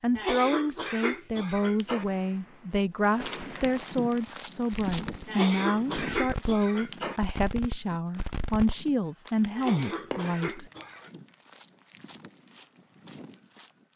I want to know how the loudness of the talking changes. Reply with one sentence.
The volume of the talking stays about the same.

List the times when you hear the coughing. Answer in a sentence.
You can hear the coughing from 0.1 to 2.0 s, from 5.2 to 7.2 s and from 9.6 to 11.1 s.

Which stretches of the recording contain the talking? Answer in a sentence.
You can hear the talking from 0.0 to 10.7 s.